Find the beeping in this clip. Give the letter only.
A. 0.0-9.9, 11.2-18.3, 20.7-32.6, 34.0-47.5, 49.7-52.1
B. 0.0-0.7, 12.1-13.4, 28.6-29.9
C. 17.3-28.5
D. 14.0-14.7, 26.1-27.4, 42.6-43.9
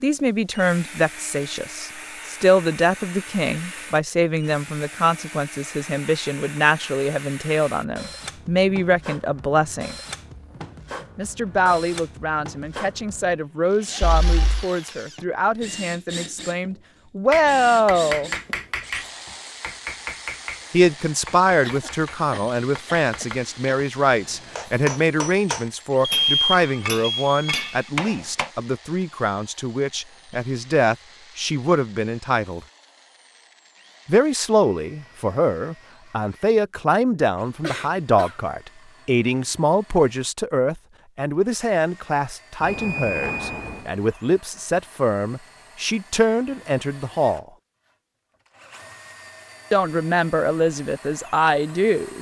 D.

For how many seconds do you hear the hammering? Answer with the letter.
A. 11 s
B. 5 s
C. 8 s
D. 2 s
A.